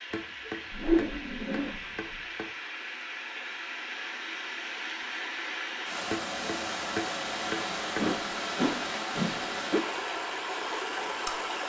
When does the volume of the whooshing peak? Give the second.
1 s.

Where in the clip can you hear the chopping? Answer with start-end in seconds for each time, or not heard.
0.1-2.5, 6.1-8.2.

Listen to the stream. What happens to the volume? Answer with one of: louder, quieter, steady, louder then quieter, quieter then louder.
louder.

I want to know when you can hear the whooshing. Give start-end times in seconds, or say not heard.
0.7-2.1, 8.0-9.8.